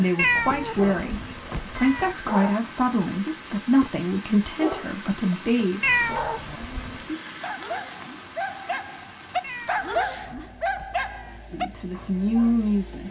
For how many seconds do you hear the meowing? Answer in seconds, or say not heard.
5 s.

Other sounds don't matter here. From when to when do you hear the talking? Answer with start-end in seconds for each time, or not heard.
0.0-6.0, 11.5-13.0.